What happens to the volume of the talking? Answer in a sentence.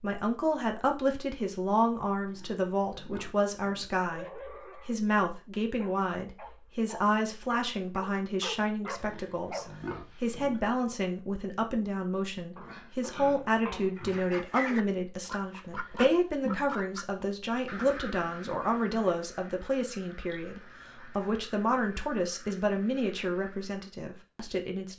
The loudness of the talking stays about the same.